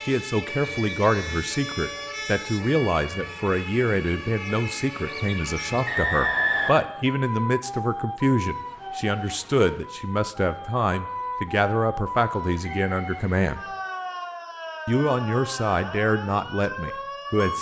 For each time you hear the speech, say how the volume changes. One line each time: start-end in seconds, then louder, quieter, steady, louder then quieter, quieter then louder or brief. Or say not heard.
0.0-13.6 steady
14.8-17.5 brief.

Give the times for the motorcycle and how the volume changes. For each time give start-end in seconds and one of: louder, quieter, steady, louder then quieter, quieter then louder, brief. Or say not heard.
not heard.